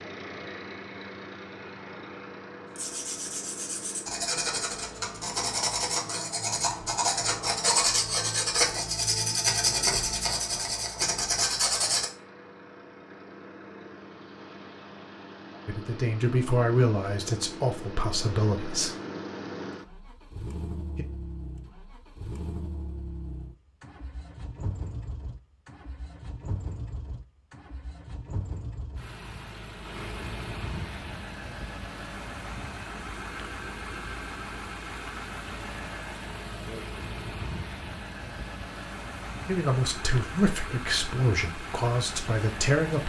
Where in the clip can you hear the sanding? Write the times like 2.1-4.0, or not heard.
2.7-12.1.